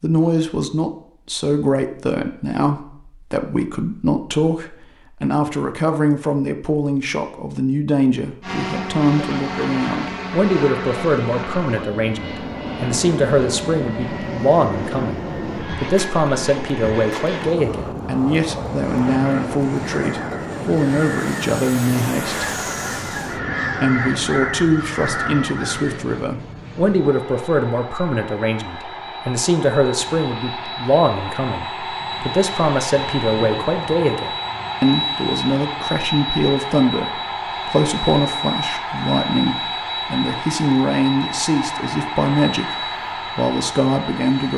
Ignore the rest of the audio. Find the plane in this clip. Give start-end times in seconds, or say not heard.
8.4-44.5.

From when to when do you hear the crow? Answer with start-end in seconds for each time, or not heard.
19.1-26.1.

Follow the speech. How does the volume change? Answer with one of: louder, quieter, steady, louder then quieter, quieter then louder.
steady.